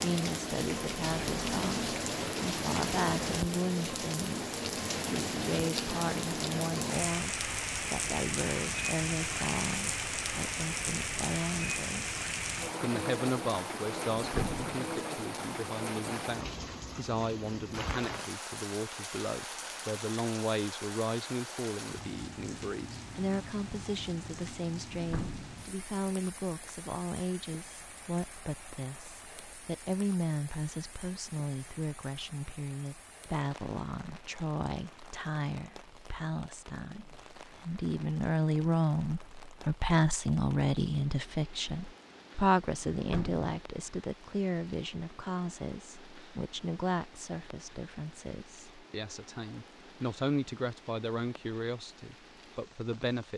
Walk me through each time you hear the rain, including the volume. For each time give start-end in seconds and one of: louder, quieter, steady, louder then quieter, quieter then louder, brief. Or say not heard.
0.0-53.3 quieter.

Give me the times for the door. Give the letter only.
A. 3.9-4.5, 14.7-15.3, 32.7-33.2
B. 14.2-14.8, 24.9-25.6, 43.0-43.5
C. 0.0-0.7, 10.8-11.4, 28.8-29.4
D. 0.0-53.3
B.